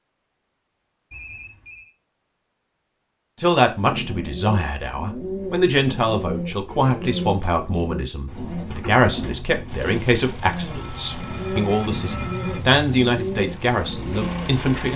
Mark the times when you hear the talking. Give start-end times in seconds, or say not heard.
3.4-14.9.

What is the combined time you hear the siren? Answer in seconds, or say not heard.
not heard.